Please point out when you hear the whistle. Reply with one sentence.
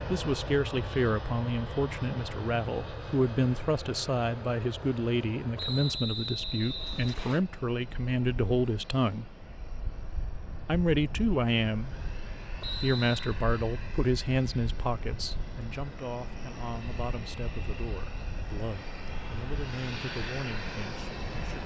The whistle can be heard from 5.5 to 7.4 s and from 12.6 to 13.3 s.